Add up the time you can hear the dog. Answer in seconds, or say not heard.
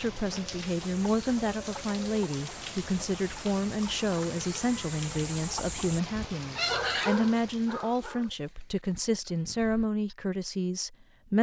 2 s.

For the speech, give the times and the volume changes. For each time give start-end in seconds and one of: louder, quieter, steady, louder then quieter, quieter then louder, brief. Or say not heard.
0.0-11.3 steady.